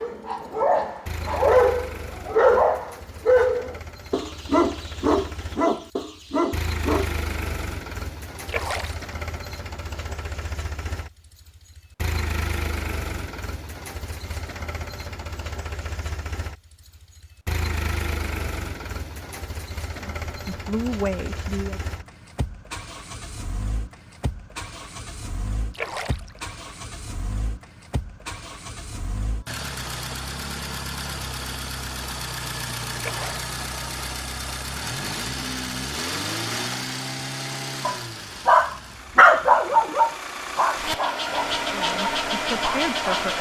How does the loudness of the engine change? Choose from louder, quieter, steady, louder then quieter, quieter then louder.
louder.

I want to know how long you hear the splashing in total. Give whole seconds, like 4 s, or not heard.
2 s.